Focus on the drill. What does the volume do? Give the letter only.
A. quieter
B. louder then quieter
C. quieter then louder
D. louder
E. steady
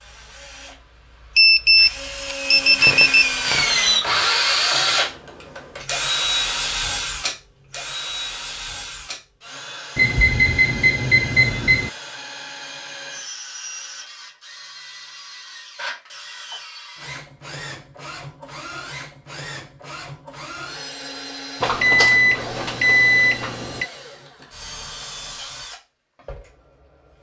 A.